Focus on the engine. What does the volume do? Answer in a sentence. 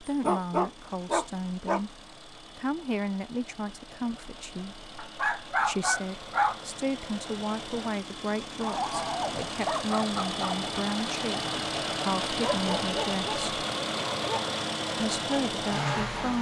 The volume of the engine goes up.